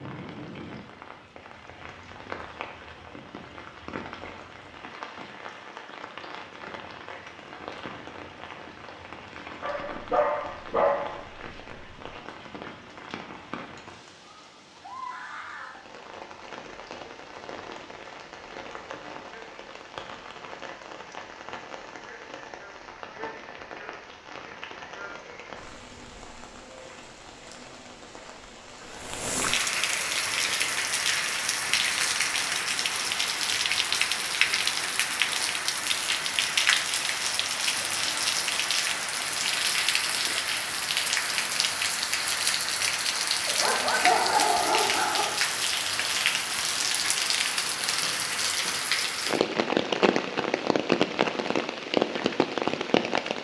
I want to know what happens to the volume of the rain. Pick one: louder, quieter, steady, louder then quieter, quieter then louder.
louder.